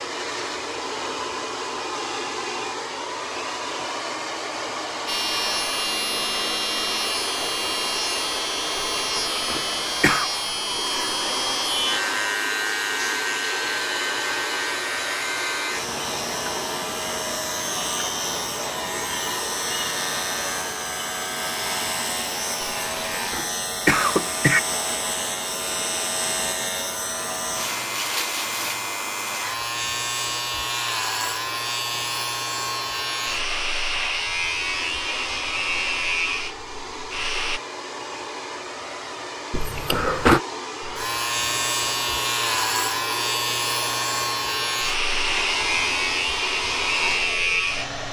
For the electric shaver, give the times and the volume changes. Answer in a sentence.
The electric shaver can be heard from 5.0 to 37.6 s, at a steady volume; and from 40.8 to 48.0 s, at a steady volume.